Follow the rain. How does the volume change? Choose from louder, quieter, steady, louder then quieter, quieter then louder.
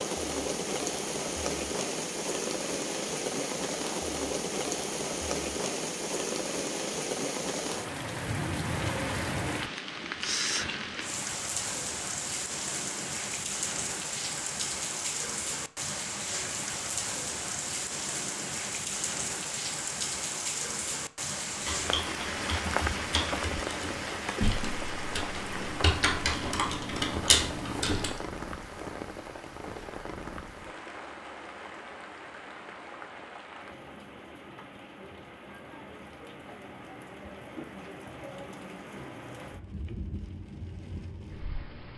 quieter.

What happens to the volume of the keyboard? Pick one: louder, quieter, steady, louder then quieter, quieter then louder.
louder.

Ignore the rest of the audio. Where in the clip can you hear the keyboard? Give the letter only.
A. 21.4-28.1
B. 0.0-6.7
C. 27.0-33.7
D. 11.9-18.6
A.